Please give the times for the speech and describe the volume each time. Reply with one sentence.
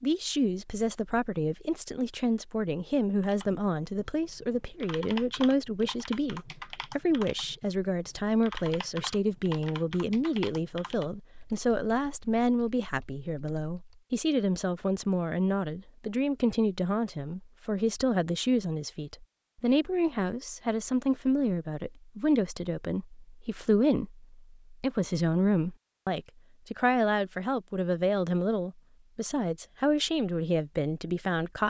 The speech can be heard from 0.0 to 31.6 s, at a steady volume.